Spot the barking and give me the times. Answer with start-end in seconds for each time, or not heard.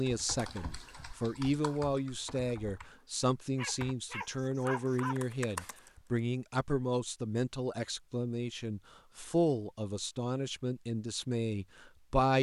3.5-5.2.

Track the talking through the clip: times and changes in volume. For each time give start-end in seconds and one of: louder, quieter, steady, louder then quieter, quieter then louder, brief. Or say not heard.
0.0-12.3 steady.